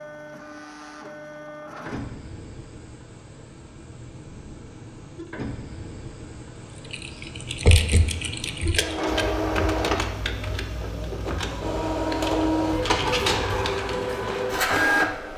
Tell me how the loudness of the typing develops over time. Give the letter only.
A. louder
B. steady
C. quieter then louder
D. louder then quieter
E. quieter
E.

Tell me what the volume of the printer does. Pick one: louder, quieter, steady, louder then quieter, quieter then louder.
louder.